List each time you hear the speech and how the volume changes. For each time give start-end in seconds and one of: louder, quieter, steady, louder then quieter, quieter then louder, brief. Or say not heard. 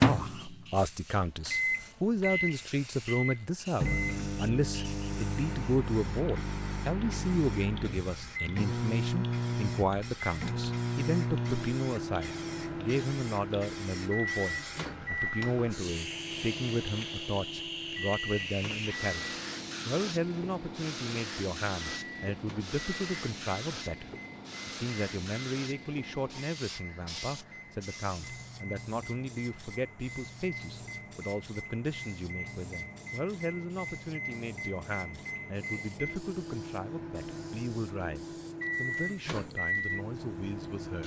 0.0-41.0 quieter.